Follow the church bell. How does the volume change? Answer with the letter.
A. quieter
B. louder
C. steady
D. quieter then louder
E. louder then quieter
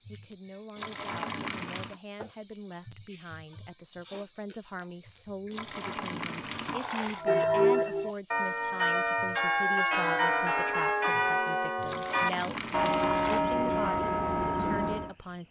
C.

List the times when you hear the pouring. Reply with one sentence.
You can hear the pouring from 0.8 to 2.0 s, from 5.5 to 7.2 s and from 11.8 to 13.4 s.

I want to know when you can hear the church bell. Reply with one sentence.
You can hear the church bell from 7.0 to 15.2 s.